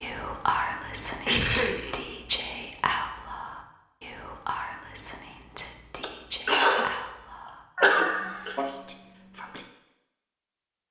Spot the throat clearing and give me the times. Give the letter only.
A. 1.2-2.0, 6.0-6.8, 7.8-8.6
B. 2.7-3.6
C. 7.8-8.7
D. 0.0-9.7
A.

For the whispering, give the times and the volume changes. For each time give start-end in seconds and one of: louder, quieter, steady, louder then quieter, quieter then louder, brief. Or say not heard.
0.0-9.7 quieter.